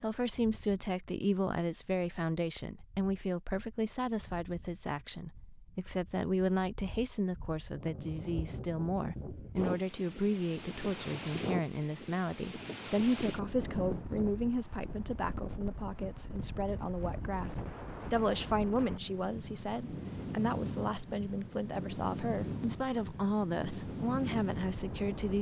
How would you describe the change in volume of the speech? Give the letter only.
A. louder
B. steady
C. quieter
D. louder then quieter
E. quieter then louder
B.